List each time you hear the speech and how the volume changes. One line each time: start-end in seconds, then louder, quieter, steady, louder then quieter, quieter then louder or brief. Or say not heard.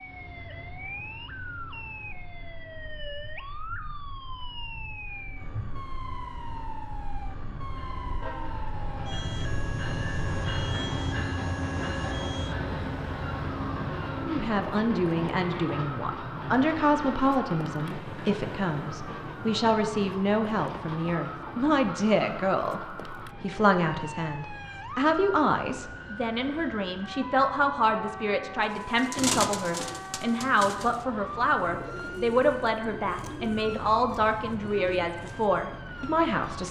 14.2-36.6 steady.